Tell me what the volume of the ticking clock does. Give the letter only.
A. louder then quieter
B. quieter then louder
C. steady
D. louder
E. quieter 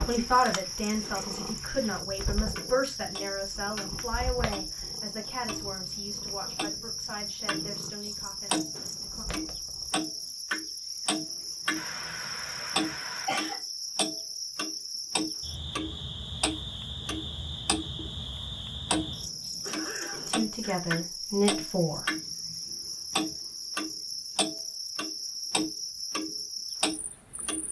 D.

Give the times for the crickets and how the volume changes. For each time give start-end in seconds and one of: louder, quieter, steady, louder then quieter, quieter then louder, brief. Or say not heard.
0.0-27.6 steady.